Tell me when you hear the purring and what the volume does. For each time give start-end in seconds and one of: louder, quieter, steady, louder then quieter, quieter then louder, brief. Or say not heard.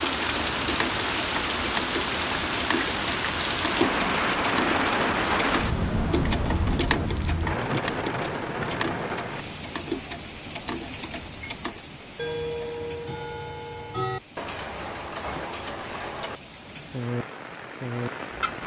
not heard.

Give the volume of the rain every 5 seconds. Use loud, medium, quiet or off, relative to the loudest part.
loud, loud, quiet, quiet.